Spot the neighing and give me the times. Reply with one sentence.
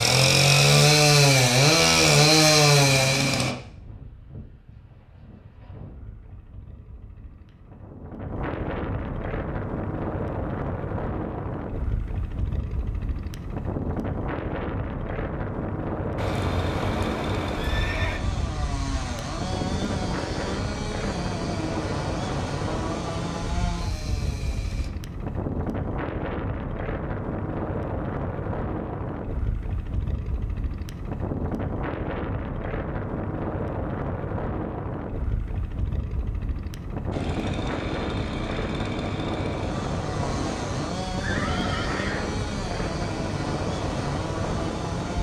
The neighing can be heard from 16.1 to 18.2 s and from 41.2 to 42.3 s.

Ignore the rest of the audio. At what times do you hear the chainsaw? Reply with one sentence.
The chainsaw can be heard from 0.0 to 3.5 s, from 16.1 to 24.9 s and from 37.1 to 45.1 s.